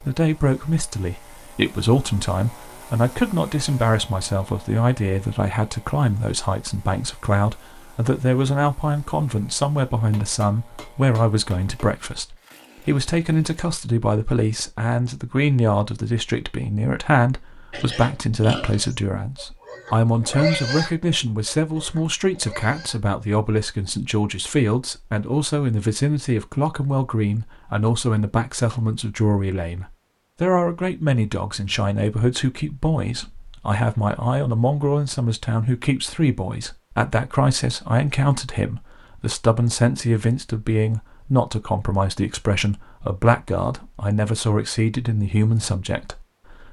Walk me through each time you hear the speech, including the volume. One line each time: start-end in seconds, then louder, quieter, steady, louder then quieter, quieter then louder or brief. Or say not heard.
0.0-46.6 steady.